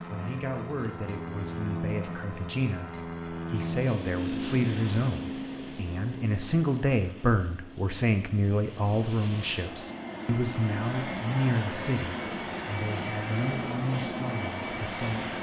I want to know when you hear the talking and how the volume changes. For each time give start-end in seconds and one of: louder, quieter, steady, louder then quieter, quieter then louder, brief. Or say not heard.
0.1-15.3 louder then quieter.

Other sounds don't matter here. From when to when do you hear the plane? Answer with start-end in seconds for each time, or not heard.
0.0-15.3.